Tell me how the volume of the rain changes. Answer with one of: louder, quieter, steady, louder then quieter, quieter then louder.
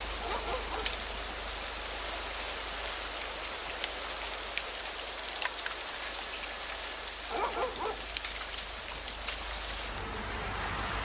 steady.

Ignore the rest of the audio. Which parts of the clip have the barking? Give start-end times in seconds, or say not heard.
0.2-1.0, 7.3-8.1.